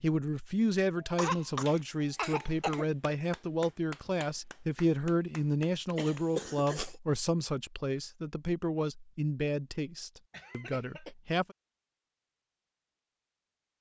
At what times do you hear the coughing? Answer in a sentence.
You can hear the coughing from 0.9 to 2.9 s, from 6.0 to 7.0 s and from 10.3 to 11.2 s.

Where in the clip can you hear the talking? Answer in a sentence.
You can hear the talking from 0.0 to 11.6 s.